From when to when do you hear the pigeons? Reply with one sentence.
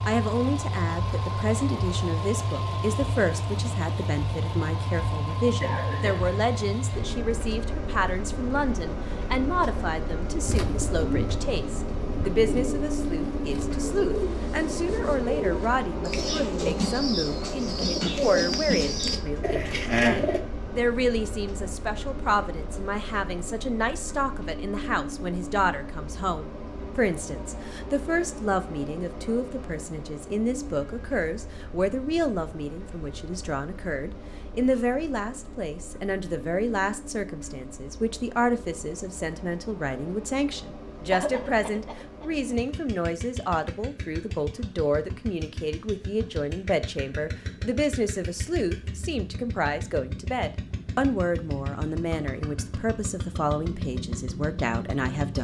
You can hear the pigeons from 10.4 to 20.4 s.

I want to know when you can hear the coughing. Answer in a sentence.
You can hear the coughing from 5.6 to 6.3 s and from 41.1 to 42.5 s.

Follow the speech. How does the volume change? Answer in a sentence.
The volume of the speech stays about the same.